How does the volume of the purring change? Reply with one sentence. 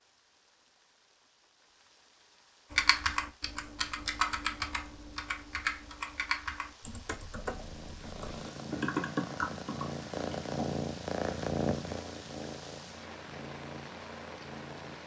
The volume of the purring goes up, then down.